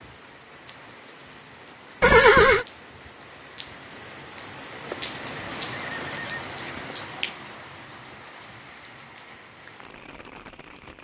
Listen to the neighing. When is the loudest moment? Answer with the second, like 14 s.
2 s.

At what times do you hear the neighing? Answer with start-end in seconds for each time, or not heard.
2.0-2.6, 5.9-6.8.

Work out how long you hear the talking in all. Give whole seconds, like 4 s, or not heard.
not heard.